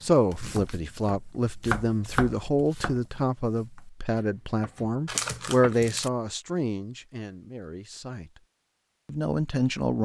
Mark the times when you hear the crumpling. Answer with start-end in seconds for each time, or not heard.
5.0-6.1.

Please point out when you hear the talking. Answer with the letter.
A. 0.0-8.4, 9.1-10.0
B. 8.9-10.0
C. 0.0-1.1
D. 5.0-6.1
A.